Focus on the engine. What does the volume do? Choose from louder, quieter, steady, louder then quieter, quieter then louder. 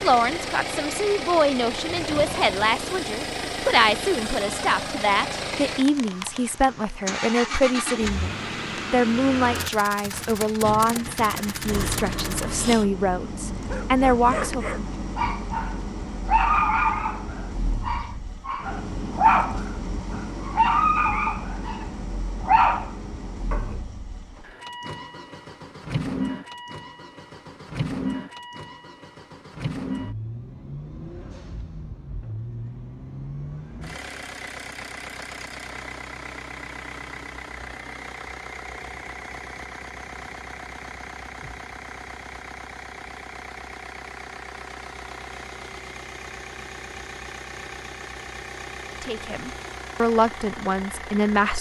quieter.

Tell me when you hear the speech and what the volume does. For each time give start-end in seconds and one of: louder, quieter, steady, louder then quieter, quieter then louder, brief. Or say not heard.
0.0-14.8 steady
49.0-51.5 brief.